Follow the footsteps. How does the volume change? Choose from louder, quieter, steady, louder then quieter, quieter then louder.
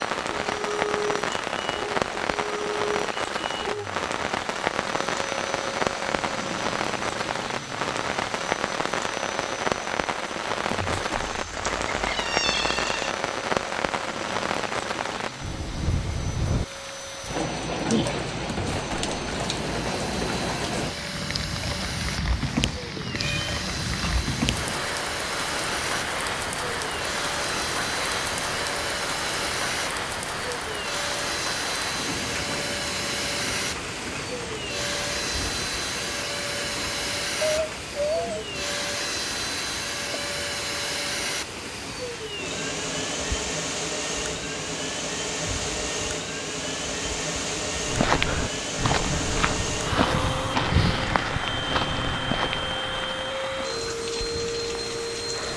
quieter.